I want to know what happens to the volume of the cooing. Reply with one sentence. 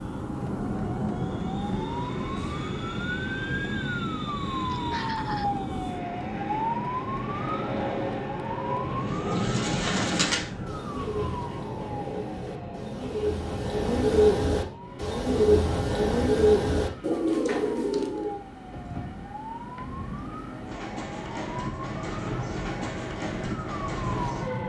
The volume of the cooing goes down, then up.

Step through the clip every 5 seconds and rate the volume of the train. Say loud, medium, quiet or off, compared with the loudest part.
loud, loud, medium, medium, loud.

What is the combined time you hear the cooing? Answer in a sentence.
You can hear the cooing for 9 seconds altogether.